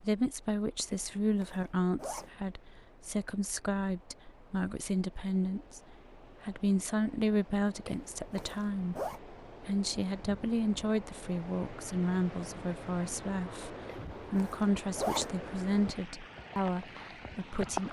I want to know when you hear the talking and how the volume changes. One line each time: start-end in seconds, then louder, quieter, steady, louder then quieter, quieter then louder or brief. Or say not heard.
0.0-17.8 steady.